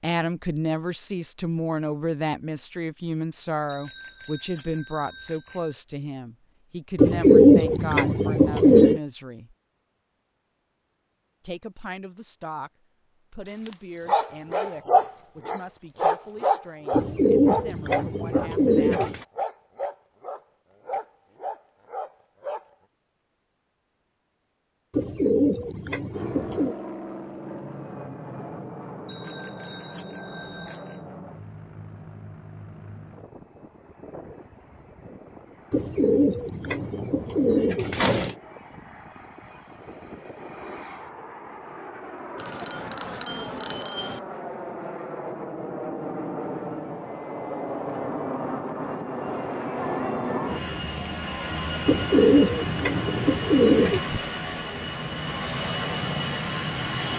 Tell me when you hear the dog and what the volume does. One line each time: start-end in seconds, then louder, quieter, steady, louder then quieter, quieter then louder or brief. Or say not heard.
13.7-22.6 quieter.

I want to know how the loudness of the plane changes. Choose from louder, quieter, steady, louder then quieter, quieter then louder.
quieter then louder.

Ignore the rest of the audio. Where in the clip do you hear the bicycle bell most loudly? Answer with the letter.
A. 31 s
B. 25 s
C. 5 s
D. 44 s
D.